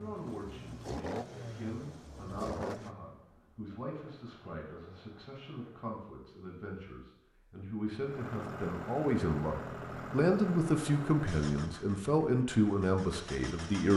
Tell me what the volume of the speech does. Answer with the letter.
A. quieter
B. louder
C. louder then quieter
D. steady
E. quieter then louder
B.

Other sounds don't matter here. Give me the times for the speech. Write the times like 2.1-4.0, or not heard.
0.0-13.9.